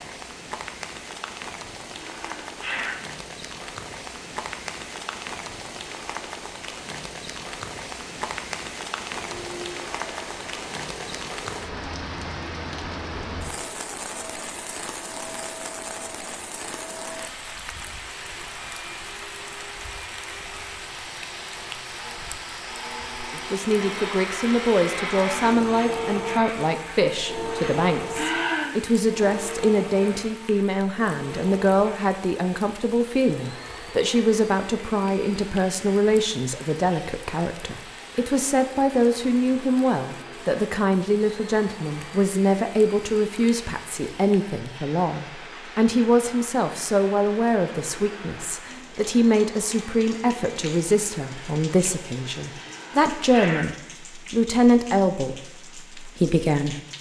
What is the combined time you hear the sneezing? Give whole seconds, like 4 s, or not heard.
3 s.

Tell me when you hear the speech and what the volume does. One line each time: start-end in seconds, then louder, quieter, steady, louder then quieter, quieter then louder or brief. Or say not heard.
23.3-56.8 steady.